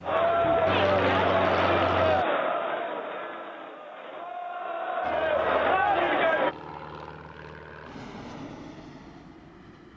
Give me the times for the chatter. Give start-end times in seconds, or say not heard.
0.0-6.5.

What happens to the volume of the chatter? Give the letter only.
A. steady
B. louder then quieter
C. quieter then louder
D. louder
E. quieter
C.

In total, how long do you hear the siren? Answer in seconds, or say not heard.
not heard.